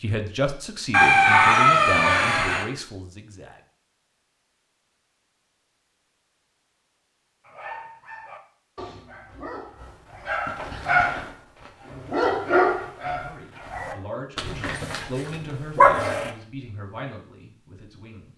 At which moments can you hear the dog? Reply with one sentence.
The dog can be heard from 7.5 to 16.3 s.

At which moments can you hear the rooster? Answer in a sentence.
The rooster can be heard from 0.9 to 2.6 s.